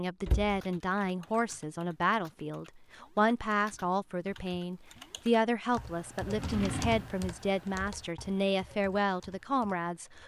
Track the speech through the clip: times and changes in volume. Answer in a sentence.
You can hear the speech from 0.0 to 10.2 s, at a steady volume.